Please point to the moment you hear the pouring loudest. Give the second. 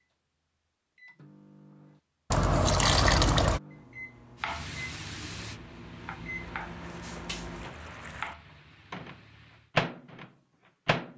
3 s.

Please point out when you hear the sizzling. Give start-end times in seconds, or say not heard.
4.4-9.7.